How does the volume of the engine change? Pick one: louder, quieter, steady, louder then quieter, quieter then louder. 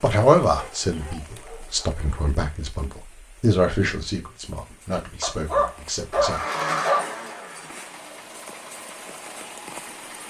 quieter.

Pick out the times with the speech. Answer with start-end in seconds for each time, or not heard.
0.0-6.4.